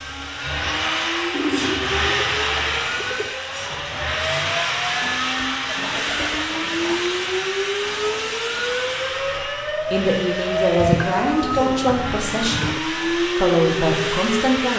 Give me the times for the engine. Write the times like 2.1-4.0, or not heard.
0.0-14.7.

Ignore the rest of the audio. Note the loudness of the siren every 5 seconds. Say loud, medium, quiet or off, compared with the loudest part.
medium, loud, loud.